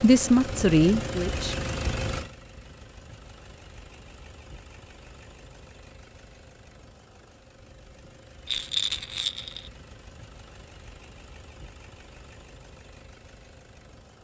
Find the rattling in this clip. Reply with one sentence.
You can hear the rattling from 8.4 to 9.7 s.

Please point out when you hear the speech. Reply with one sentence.
You can hear the speech from 0.0 to 1.6 s.